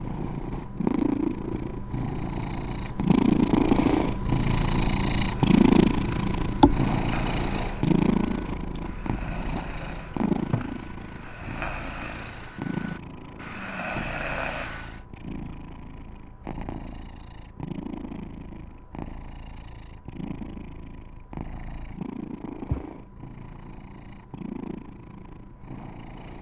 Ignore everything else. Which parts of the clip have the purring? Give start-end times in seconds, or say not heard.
0.0-26.3.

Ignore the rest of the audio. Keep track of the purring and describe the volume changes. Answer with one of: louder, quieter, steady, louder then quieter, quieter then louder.
quieter.